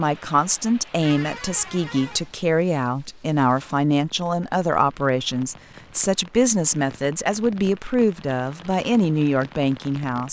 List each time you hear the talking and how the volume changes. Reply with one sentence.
You can hear the talking from 0.0 to 10.2 s, at a steady volume.